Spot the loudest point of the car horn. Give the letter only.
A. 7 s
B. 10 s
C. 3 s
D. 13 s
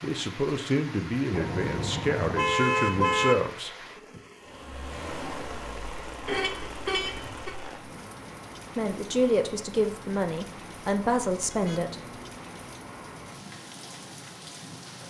C.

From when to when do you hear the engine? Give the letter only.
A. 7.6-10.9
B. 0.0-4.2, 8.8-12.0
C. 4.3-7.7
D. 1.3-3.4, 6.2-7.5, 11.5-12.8
C.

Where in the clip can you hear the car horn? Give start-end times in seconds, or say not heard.
1.3-3.4, 6.2-7.5, 11.5-12.8.